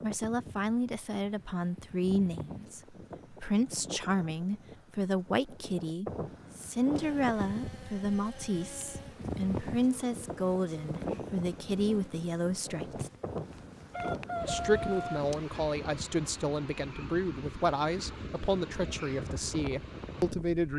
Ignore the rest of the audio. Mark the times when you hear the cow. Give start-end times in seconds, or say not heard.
not heard.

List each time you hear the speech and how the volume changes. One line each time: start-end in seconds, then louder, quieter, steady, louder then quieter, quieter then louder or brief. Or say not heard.
0.0-13.1 steady
14.4-20.7 steady.